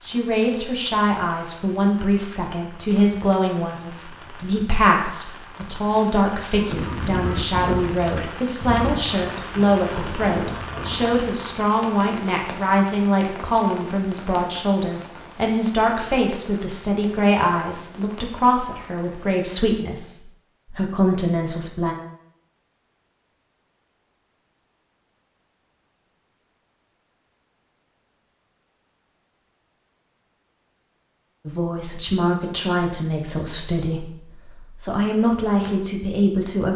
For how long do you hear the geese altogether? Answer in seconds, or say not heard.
5 s.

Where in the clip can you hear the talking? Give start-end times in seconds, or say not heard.
0.0-21.9, 31.4-36.7.